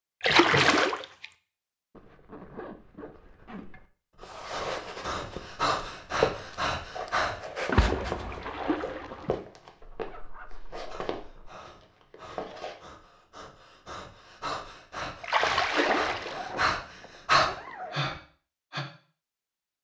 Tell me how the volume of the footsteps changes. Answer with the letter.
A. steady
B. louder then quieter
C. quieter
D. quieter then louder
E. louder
B.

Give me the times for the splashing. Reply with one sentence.
The splashing can be heard from 0.2 to 1.2 s, from 7.7 to 9.3 s and from 15.2 to 16.4 s.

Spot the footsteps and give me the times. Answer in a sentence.
The footsteps can be heard from 4.2 to 12.8 s.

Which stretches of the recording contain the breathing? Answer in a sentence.
You can hear the breathing from 4.2 to 7.3 s and from 10.8 to 18.9 s.